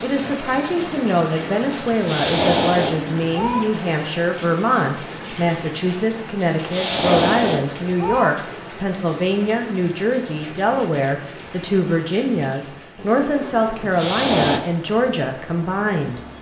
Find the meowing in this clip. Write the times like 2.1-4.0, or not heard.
1.9-3.6, 6.5-8.2, 13.8-14.6.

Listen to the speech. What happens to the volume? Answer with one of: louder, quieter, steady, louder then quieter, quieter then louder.
steady.